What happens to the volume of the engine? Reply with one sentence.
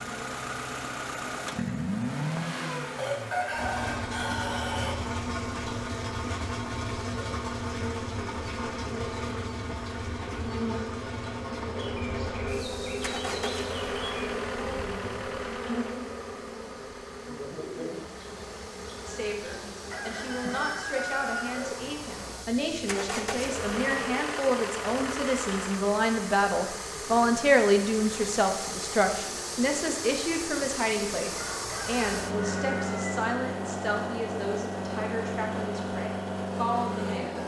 The loudness of the engine goes down, then up.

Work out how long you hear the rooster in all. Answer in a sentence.
You can hear the rooster for 6 seconds altogether.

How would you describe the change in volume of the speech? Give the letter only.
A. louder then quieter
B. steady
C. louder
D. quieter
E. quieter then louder
A.